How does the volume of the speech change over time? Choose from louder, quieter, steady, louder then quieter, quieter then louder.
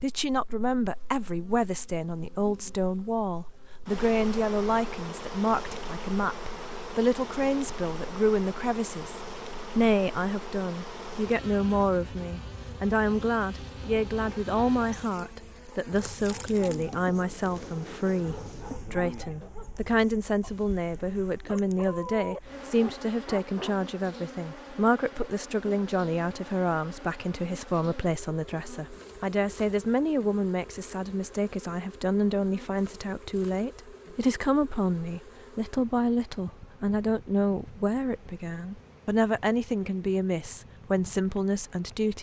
steady.